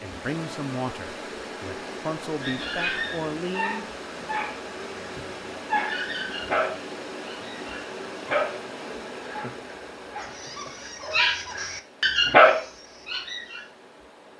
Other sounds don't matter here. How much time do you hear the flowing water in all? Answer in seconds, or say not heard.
14 s.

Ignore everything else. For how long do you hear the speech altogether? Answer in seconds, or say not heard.
4 s.